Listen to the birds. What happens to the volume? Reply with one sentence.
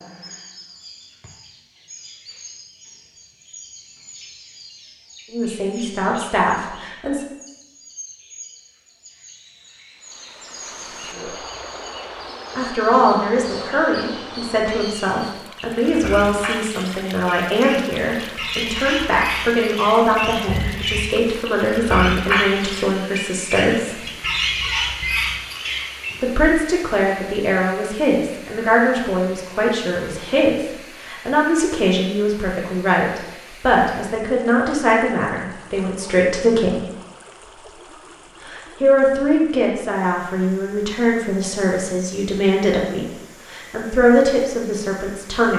The loudness of the birds goes up.